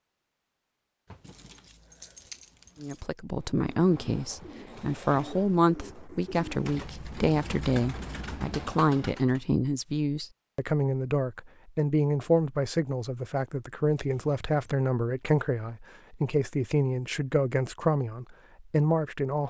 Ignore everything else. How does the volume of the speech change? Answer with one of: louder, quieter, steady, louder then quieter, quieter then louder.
steady.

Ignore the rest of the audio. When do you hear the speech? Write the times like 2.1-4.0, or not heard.
2.8-19.4.